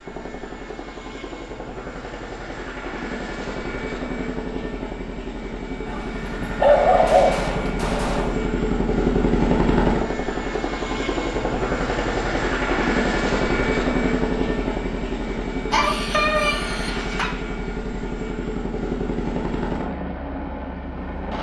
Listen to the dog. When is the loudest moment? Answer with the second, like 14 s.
7 s.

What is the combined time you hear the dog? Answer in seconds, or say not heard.
4 s.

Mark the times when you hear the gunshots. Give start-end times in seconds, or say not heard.
6.9-8.4.